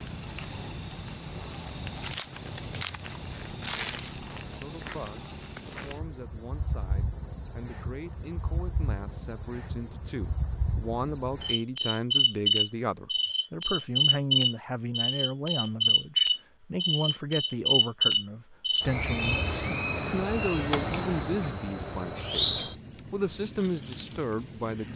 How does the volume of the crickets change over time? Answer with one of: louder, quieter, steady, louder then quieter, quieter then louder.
steady.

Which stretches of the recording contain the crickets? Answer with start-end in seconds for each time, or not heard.
0.0-24.9.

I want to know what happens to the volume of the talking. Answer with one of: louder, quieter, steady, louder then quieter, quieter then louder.
louder.